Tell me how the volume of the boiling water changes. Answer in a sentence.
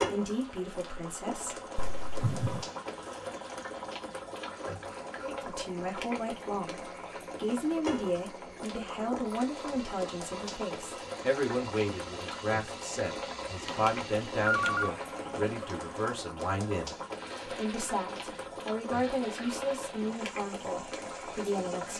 The volume of the boiling water stays about the same.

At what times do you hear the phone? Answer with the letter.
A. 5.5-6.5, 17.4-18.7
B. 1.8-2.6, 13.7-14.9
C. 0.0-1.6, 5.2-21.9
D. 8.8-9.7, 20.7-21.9
B.